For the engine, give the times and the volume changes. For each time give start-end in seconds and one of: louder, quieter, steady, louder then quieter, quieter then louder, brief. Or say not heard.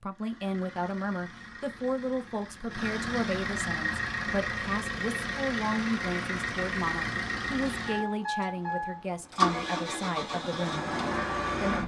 0.0-11.8 louder.